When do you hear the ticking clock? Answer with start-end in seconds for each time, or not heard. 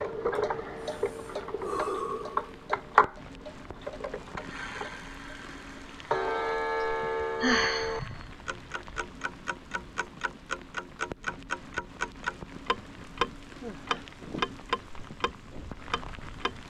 0.0-16.6.